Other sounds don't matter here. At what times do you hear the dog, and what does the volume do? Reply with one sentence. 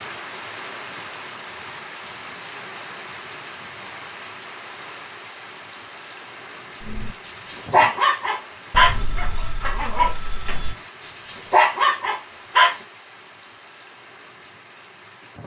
The dog can be heard from 6.8 to 12.8 s, getting quieter then louder.